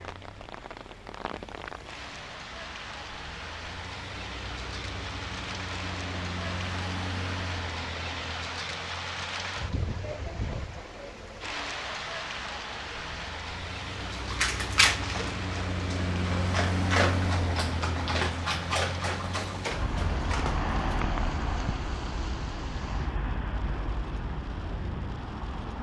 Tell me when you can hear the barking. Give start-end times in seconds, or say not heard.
14.2-20.7.